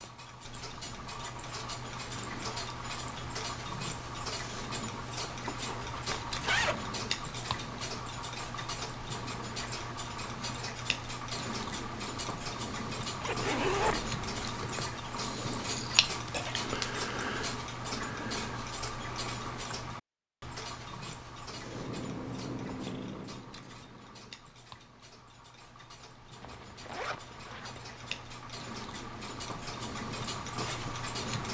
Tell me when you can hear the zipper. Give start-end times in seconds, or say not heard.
5.7-6.8, 13.2-14.2, 26.4-28.0.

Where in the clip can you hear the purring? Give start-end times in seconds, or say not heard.
21.5-24.2.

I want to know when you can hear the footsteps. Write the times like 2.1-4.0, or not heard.
not heard.